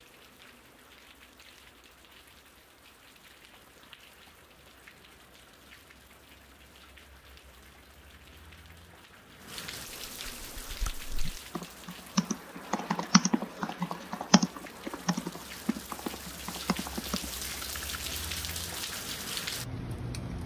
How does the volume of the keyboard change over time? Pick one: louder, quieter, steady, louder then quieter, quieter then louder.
quieter.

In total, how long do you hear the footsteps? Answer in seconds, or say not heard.
not heard.